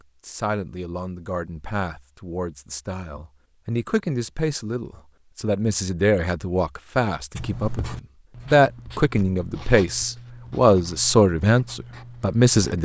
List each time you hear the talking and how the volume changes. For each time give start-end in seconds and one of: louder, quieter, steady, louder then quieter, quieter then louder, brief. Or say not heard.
0.2-12.8 louder.